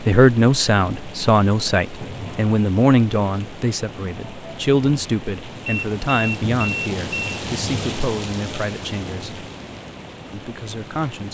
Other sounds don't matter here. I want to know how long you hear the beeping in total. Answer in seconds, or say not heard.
2 s.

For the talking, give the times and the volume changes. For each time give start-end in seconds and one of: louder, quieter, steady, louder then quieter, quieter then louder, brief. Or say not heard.
0.0-9.4 quieter
10.3-11.2 brief.